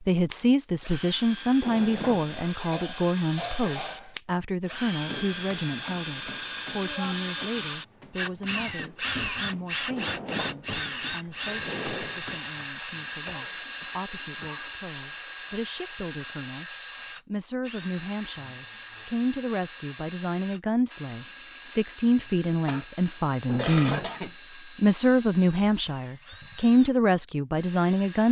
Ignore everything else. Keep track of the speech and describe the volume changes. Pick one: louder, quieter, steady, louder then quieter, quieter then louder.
quieter then louder.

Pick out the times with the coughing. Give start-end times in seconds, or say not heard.
2.4-4.2, 13.2-14.8, 22.6-24.4.